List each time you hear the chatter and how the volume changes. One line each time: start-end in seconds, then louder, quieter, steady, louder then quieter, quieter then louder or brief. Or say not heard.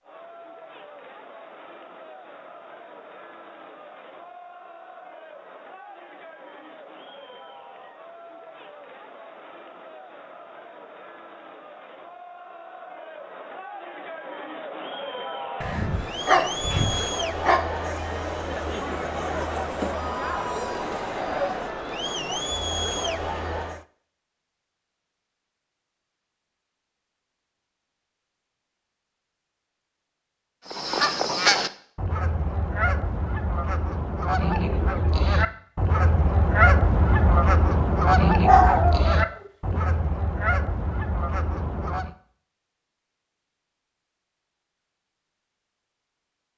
0.0-23.9 louder.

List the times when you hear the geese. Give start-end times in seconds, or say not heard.
30.6-42.1.